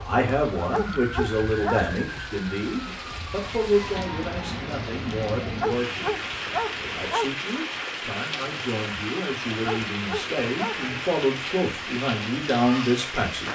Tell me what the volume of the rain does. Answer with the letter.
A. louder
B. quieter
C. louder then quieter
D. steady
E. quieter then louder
A.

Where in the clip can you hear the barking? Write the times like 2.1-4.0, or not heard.
0.6-1.9, 5.4-7.3, 9.4-10.9.